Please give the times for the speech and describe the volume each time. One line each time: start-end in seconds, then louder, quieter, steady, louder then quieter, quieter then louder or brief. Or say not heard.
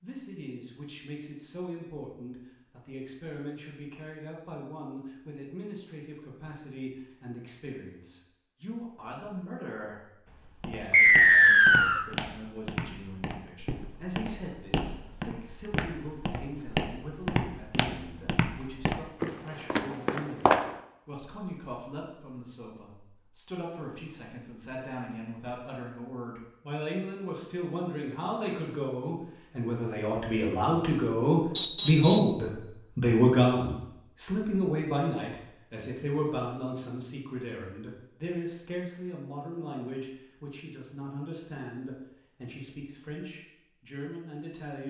0.0-44.8 louder then quieter.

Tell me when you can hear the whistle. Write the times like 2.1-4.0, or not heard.
10.9-12.1, 31.6-32.4.